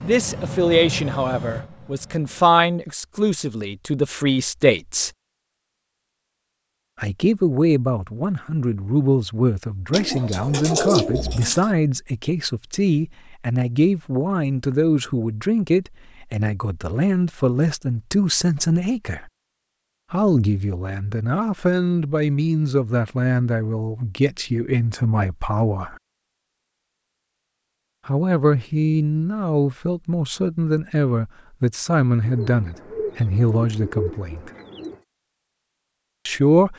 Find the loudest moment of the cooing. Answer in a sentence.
The loudest moment of the cooing is at 11 seconds.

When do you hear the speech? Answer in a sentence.
You can hear the speech from 0.0 to 5.1 s, from 7.0 to 19.3 s, from 20.1 to 25.9 s, from 28.1 to 34.5 s and from 36.2 to 36.7 s.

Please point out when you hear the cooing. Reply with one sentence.
You can hear the cooing from 9.9 to 11.7 s and from 32.2 to 35.0 s.